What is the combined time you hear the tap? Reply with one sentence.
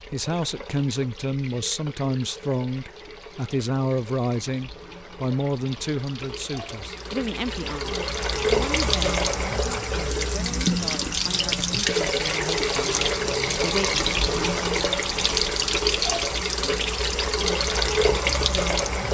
The tap can be heard for 19 seconds in total.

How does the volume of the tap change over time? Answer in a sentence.
The loudness of the tap goes up.